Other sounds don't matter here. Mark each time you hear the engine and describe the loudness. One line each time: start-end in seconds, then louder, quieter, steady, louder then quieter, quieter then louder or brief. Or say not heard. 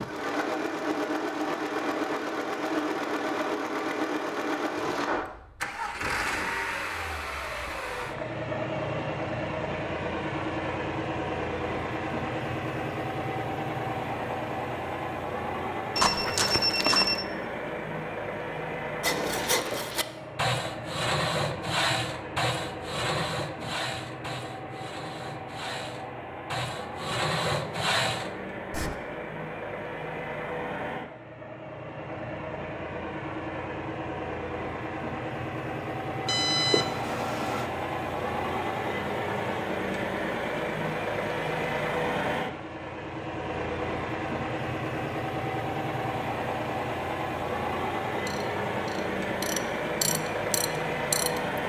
0.0-51.6 quieter then louder.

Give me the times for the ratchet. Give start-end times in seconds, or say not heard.
48.2-51.6.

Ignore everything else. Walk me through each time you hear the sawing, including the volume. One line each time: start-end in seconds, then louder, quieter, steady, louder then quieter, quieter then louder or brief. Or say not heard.
19.0-29.0 quieter then louder.